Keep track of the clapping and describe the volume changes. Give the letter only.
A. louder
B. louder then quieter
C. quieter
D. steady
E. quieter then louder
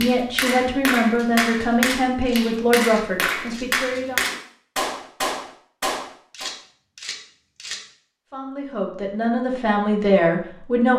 D.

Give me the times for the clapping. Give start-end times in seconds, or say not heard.
0.0-6.5.